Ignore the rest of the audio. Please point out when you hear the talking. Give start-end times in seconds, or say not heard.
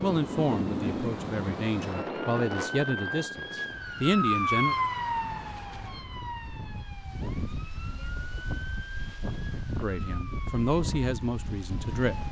0.0-4.8, 9.8-12.2.